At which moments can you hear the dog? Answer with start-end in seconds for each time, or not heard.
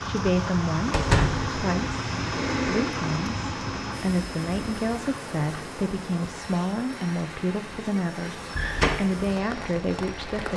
not heard.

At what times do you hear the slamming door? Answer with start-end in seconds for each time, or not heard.
0.9-1.5, 8.2-8.9.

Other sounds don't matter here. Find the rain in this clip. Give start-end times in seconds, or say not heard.
0.0-10.5.